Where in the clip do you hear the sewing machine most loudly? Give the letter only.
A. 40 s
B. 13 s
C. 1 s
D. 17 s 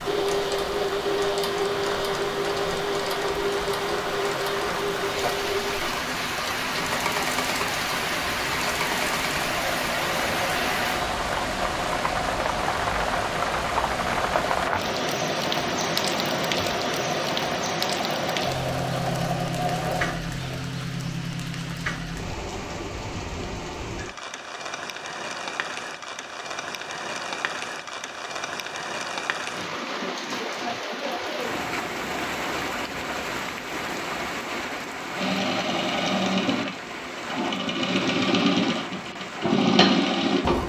A.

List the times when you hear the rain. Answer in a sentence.
The rain can be heard from 0.0 to 40.6 s.